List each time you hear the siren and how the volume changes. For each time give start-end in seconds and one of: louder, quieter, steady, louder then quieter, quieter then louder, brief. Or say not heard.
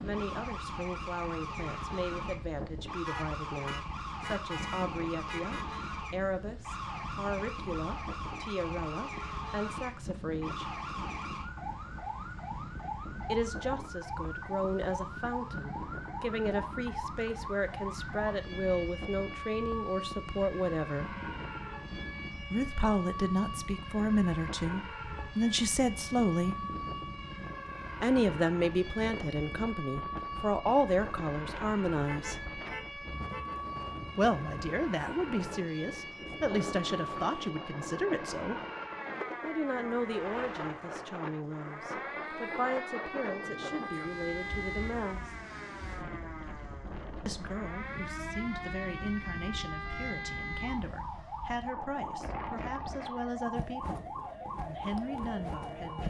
0.0-56.0 steady.